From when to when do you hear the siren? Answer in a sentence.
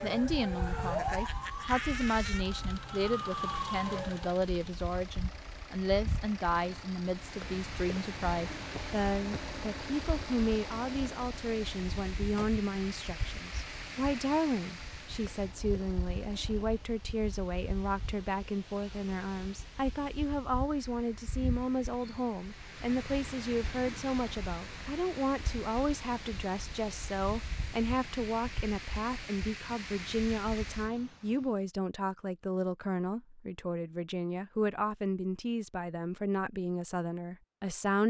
You can hear the siren from 0.0 to 4.4 s.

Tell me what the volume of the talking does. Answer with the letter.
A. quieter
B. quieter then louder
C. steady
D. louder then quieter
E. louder
C.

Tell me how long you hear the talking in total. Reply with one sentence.
You can hear the talking for 38 seconds altogether.